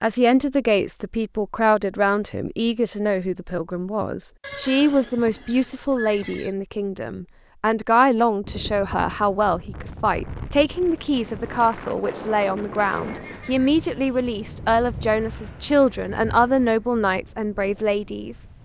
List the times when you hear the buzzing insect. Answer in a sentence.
You can't hear the buzzing insect here.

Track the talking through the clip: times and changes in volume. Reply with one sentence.
The talking can be heard from 0.0 to 18.4 s, at a steady volume.